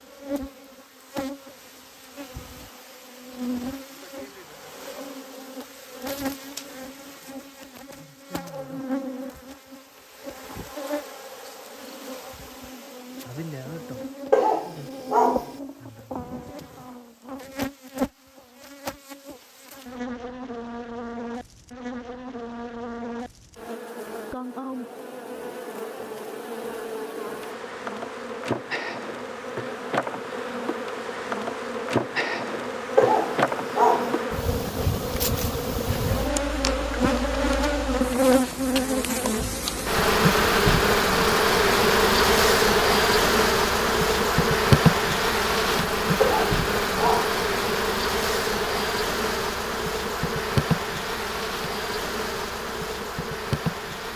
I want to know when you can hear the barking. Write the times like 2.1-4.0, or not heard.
14.3-15.6, 33.0-34.2, 46.2-47.4.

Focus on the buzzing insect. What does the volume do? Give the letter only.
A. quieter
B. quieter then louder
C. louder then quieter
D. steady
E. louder
E.